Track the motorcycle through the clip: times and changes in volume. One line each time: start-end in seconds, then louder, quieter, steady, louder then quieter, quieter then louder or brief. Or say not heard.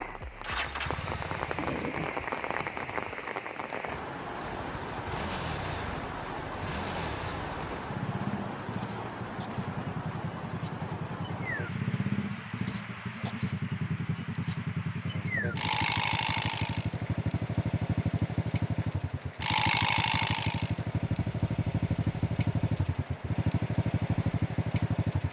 0.0-1.9 brief
4.3-25.2 louder.